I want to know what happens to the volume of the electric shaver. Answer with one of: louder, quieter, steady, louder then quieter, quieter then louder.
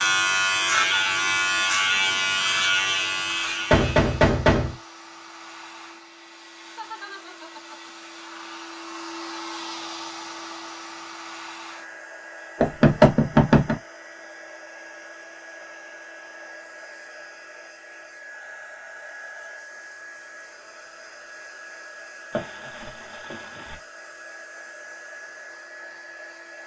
quieter.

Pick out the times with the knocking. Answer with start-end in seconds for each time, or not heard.
3.7-4.8, 12.6-13.8, 22.3-23.8.